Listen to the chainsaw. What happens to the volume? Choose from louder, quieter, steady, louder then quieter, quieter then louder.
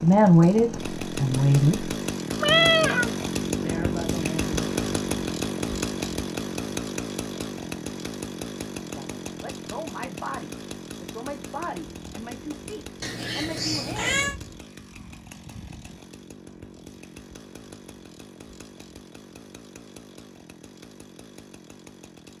quieter.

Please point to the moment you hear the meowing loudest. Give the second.
3 s.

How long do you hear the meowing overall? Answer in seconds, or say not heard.
2 s.